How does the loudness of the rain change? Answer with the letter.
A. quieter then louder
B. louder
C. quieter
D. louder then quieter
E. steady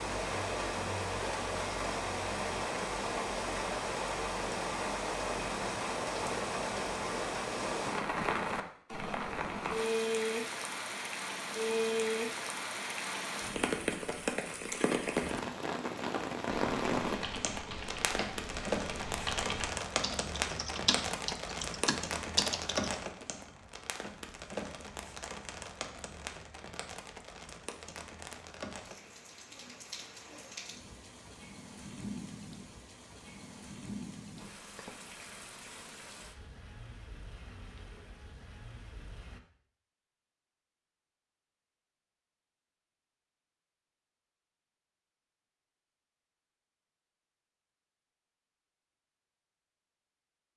C.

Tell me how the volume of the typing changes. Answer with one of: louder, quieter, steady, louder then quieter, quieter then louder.
louder.